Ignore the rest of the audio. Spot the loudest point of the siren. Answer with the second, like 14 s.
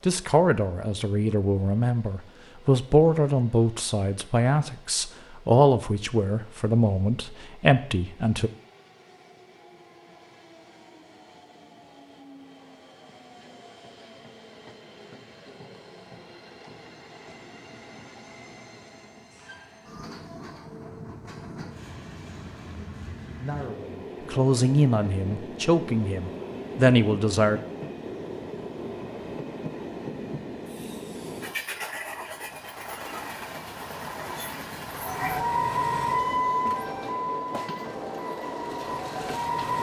36 s.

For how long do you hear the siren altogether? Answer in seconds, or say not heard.
5 s.